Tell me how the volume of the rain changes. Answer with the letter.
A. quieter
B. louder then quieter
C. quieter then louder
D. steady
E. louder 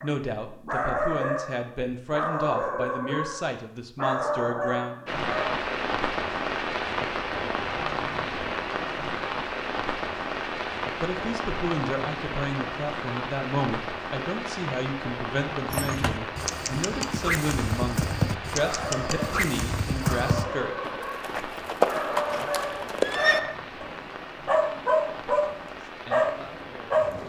A.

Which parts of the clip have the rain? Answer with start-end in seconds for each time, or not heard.
5.0-27.2.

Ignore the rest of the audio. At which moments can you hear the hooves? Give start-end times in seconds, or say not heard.
15.7-23.4.